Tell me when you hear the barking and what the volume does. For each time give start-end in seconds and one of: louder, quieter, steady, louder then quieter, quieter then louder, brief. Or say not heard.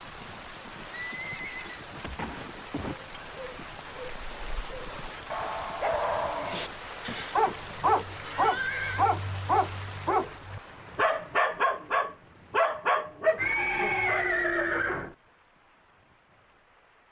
3.0-14.2 louder.